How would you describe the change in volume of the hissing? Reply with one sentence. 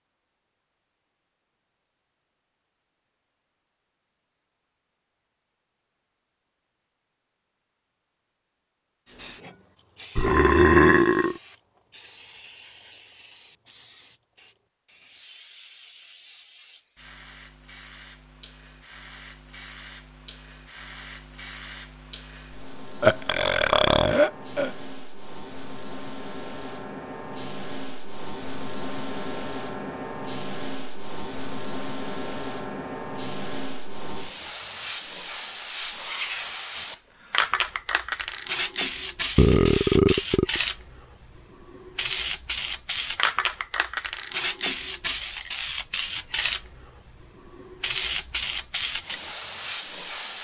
The loudness of the hissing goes up.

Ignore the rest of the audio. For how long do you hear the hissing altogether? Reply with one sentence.
The hissing can be heard for 41 seconds in total.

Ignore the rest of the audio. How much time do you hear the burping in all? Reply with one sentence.
You can hear the burping for 4 seconds altogether.